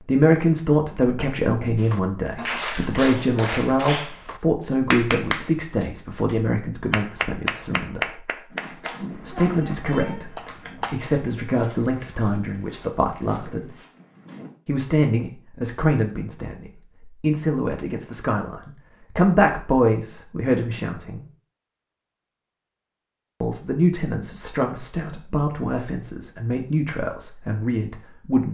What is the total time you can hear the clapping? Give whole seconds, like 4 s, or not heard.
9 s.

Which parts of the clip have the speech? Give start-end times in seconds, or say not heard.
0.0-8.3, 9.2-13.8, 14.7-21.2, 23.4-28.4.